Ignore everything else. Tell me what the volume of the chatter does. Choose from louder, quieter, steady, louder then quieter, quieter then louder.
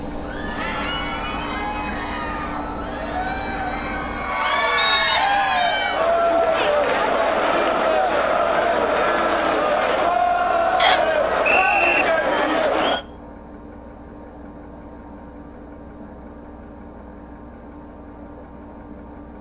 louder.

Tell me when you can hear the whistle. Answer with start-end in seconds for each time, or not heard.
4.8-5.8, 10.8-12.1.